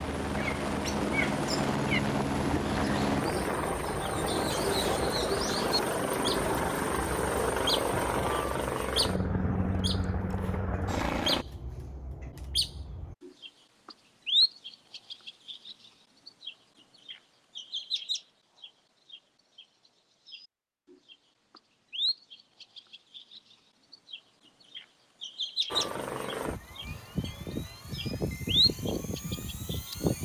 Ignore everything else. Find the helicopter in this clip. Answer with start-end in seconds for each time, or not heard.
0.0-11.4, 25.7-30.1.